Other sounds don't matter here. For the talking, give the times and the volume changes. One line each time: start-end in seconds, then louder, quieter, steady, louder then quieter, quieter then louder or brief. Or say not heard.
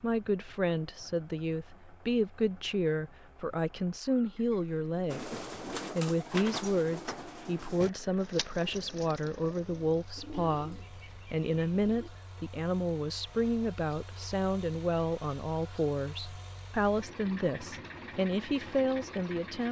0.0-19.6 steady.